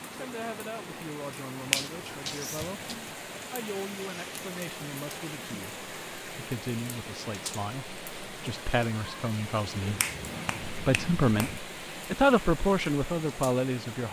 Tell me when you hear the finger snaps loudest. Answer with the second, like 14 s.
2 s.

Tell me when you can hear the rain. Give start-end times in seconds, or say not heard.
0.0-14.0.